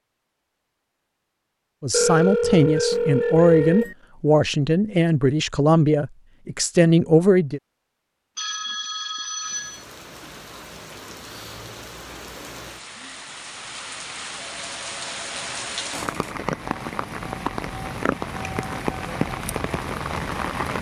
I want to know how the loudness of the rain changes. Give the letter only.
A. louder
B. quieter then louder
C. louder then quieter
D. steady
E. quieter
A.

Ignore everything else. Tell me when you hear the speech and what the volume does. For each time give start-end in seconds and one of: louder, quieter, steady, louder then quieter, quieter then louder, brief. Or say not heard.
1.8-7.6 steady.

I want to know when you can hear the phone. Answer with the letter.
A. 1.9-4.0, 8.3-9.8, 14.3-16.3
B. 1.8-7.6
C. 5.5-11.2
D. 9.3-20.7
A.